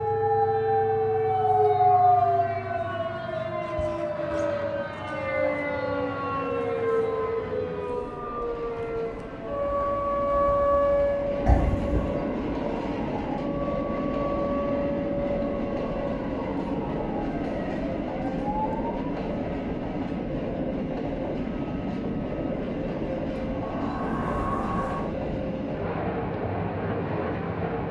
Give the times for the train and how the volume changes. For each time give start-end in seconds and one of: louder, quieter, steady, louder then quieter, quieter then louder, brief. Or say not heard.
0.0-27.8 louder.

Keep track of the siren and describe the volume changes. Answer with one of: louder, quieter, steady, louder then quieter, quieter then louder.
quieter.